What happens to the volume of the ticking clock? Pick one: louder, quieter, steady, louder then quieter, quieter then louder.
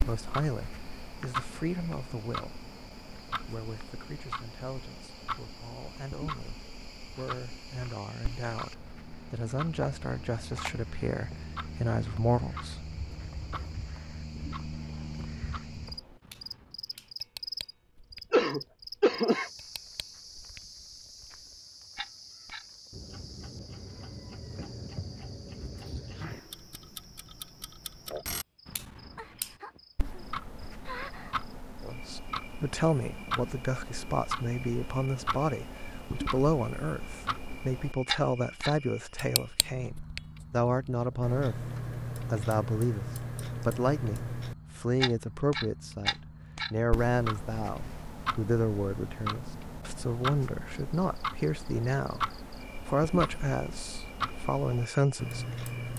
quieter then louder.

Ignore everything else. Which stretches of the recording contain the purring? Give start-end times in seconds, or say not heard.
not heard.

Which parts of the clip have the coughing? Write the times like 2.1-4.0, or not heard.
18.3-19.5.